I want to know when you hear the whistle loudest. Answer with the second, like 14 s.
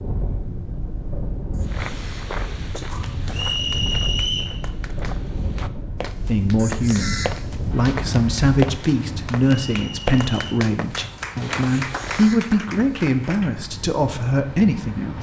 4 s.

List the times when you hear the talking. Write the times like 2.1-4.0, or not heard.
6.2-15.1.